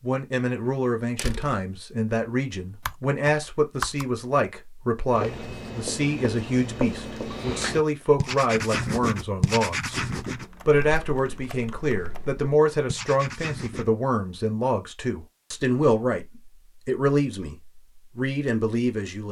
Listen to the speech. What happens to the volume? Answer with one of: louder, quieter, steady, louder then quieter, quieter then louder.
steady.